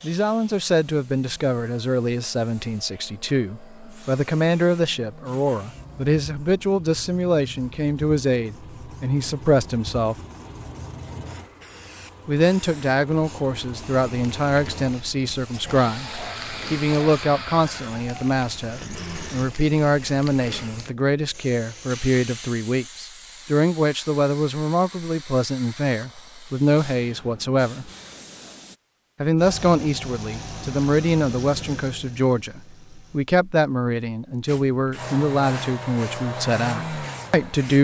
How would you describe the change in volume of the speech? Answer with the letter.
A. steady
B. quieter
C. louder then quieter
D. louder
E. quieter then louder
A.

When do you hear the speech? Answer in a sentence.
You can hear the speech from 0.0 to 10.2 s, from 12.2 to 27.9 s and from 29.2 to 37.7 s.